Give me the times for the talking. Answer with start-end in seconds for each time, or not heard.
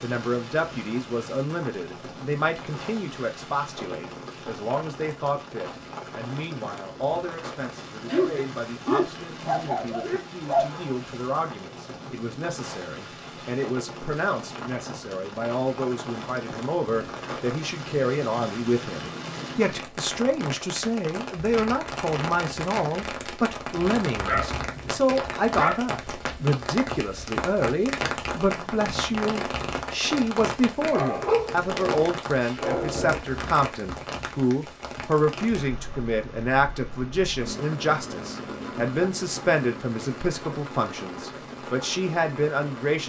0.0-43.0.